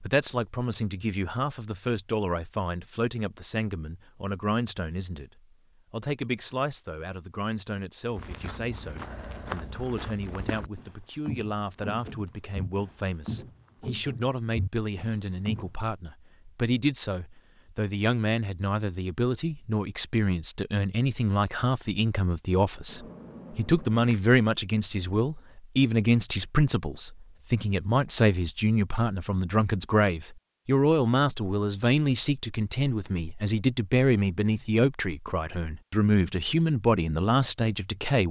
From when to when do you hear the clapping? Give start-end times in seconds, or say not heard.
not heard.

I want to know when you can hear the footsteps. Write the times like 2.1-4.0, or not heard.
8.1-15.8.